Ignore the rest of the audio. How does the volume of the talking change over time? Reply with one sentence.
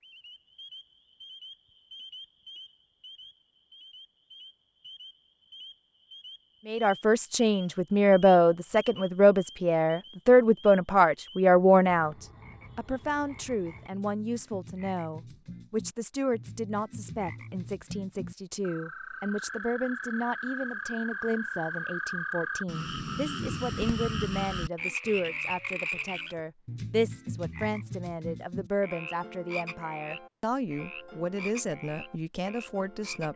The loudness of the talking goes down.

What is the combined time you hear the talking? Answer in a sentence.
You can hear the talking for 27 seconds altogether.